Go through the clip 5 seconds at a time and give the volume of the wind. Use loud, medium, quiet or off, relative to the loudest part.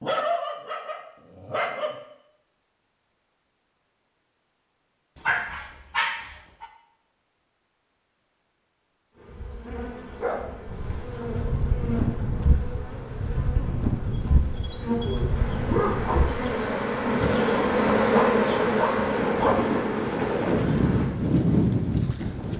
off, off, medium, medium, loud.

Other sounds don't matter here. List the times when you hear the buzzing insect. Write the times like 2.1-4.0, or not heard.
9.1-21.1.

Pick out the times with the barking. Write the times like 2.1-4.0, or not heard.
0.0-1.9, 5.2-6.7, 9.3-10.8, 14.3-16.2, 18.1-19.6.